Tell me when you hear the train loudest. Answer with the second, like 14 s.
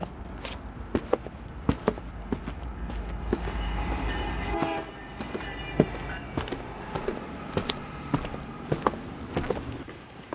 4 s.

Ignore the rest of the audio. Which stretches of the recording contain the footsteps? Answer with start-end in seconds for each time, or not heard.
0.0-10.3.